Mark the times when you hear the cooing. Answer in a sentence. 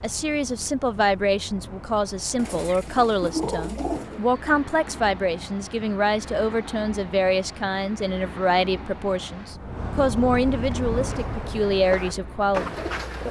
You can hear the cooing from 2.4 to 4.2 s and from 10.6 to 13.2 s.